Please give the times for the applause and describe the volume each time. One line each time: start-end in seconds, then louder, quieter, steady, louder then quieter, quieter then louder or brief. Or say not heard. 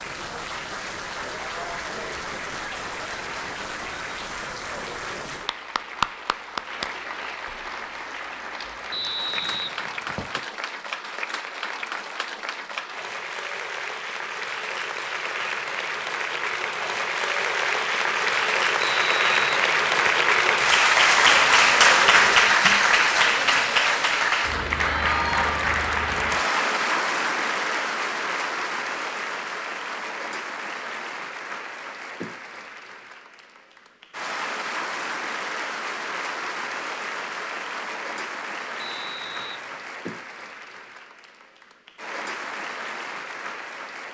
0.0-44.0 louder then quieter.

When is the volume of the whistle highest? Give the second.
9 s.